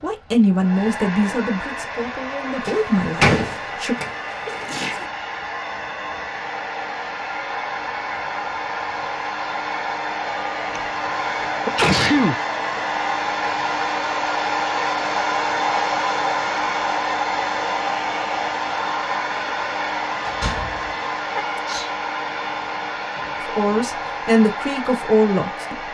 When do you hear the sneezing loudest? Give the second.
12 s.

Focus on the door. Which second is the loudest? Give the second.
3 s.